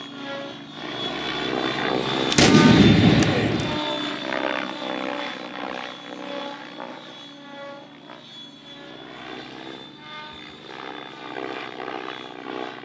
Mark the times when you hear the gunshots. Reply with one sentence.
The gunshots can be heard from 2.3 to 3.8 s.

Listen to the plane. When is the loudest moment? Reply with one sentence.
The volume of the plane peaks at 2 seconds.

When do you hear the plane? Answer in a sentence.
You can hear the plane from 0.0 to 12.7 s.